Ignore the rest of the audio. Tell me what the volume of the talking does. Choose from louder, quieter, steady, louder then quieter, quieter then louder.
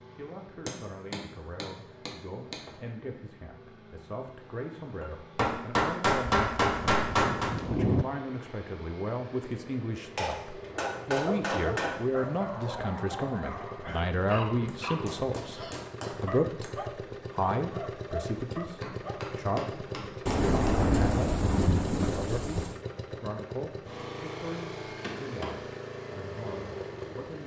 louder then quieter.